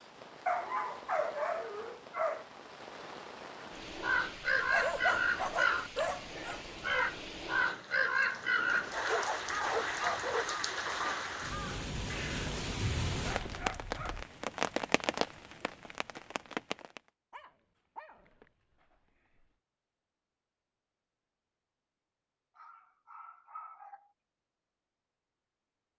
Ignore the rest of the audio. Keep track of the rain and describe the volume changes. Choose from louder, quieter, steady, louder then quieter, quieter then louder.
louder.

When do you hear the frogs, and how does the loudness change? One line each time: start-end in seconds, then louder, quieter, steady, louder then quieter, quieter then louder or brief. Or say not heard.
not heard.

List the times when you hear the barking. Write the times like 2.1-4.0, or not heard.
0.5-2.5, 4.7-6.7, 8.7-10.5, 13.1-14.2, 17.3-19.4, 22.6-24.1.